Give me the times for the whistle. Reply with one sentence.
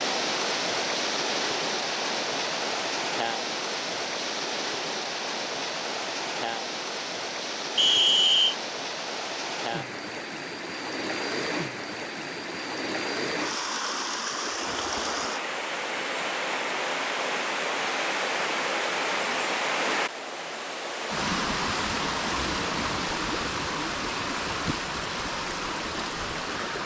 The whistle can be heard from 7.8 to 8.6 s.